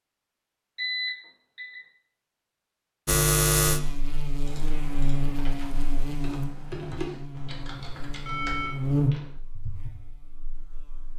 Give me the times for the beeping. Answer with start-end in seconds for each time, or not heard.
0.8-1.8, 8.2-9.3.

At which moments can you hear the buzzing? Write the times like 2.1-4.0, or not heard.
3.0-11.1.